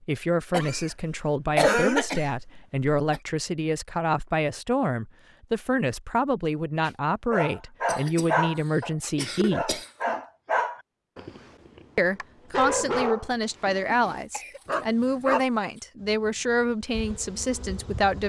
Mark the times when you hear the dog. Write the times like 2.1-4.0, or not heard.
6.8-15.4.